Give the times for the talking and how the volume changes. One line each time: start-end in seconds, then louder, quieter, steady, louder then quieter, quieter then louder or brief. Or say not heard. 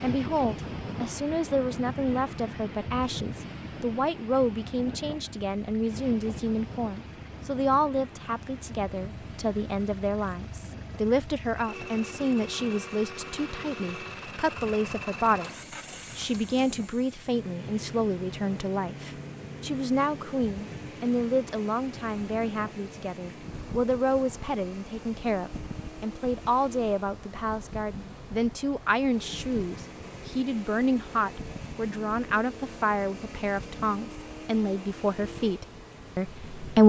0.0-36.8 steady.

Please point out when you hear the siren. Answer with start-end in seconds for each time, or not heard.
not heard.